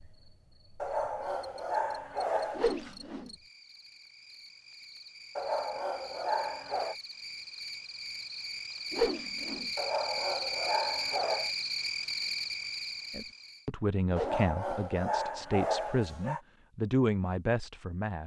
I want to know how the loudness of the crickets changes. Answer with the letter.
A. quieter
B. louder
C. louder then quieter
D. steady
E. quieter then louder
B.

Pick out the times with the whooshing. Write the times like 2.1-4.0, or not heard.
2.5-3.3, 8.9-9.7, 14.1-14.8.